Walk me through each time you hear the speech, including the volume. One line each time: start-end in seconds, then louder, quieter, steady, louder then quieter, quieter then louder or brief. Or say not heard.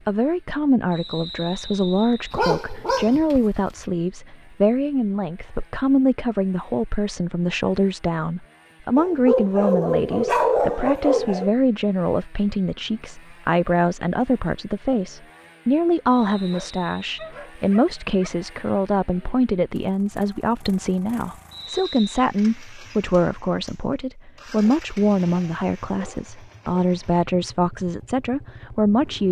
0.1-29.2 steady.